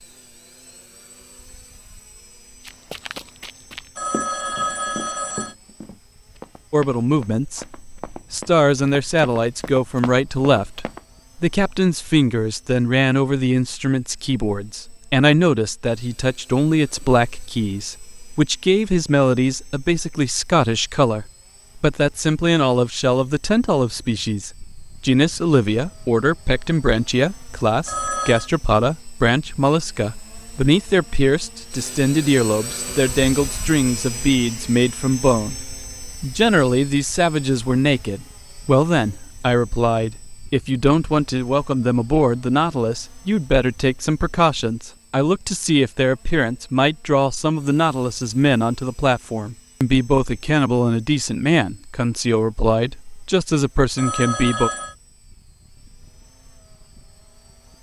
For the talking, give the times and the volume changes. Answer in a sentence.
You can hear the talking from 6.7 to 54.7 s, at a steady volume.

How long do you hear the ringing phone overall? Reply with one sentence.
The ringing phone can be heard for 3 seconds in total.